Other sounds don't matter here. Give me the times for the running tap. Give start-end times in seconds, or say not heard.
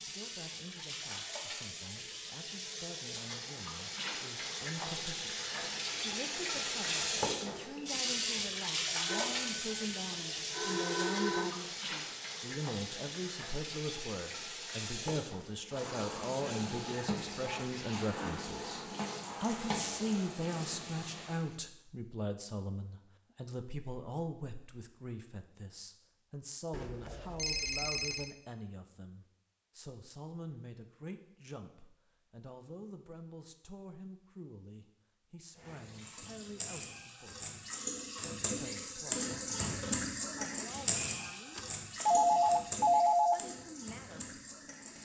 0.0-21.6, 35.5-45.0.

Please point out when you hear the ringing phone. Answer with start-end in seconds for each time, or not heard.
9.1-11.6, 26.7-28.3, 41.5-43.4.